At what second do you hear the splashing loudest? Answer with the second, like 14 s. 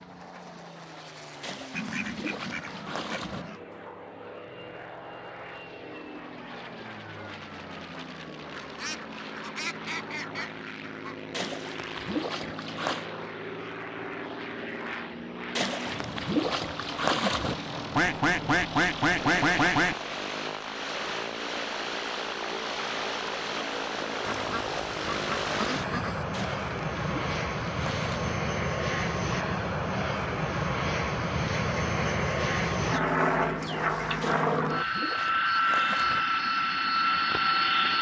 17 s.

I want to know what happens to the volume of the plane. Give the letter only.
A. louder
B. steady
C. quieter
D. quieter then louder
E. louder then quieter
A.